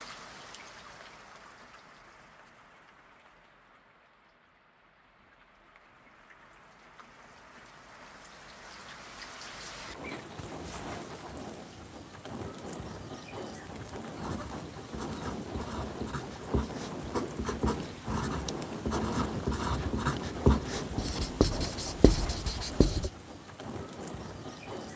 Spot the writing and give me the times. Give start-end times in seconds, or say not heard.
14.2-23.1.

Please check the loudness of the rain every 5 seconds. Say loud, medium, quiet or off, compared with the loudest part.
quiet, medium, loud, loud, loud.